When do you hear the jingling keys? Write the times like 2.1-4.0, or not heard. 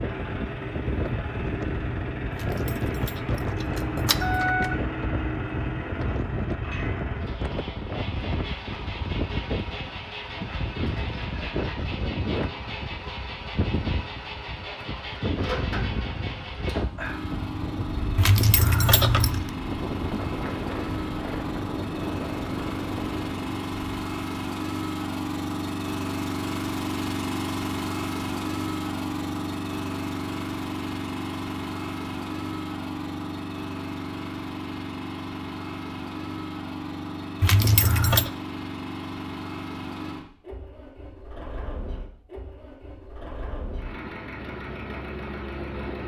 2.3-4.8, 18.1-19.4, 37.4-38.3.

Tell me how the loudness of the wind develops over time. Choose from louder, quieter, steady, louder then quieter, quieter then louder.
steady.